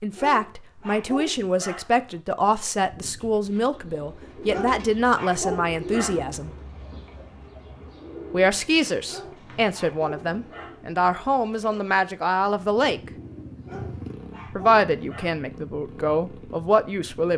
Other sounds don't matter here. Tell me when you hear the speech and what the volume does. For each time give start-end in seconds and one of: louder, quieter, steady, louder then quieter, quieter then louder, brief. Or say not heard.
0.0-6.5 steady
8.3-13.1 steady
14.5-17.3 brief.